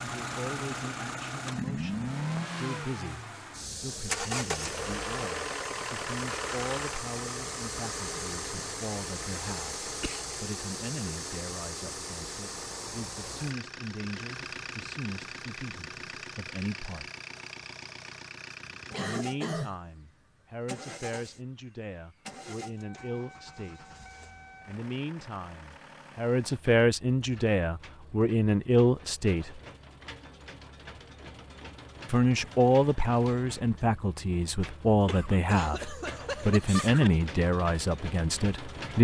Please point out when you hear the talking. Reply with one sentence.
The talking can be heard from 0.0 to 17.1 s, from 19.0 to 23.9 s, from 24.6 to 29.6 s and from 32.0 to 39.0 s.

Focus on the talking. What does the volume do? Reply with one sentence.
The loudness of the talking goes up.